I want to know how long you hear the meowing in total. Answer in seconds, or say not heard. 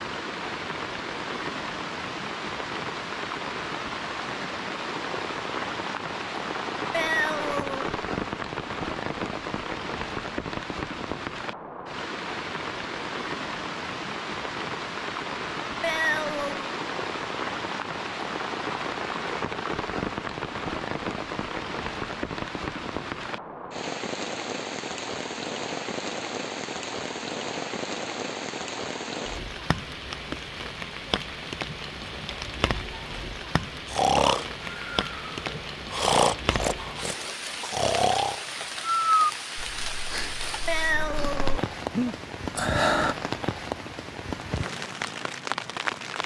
3 s.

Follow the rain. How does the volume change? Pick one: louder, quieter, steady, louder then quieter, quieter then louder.
steady.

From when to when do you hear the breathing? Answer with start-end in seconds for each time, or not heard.
33.9-43.1.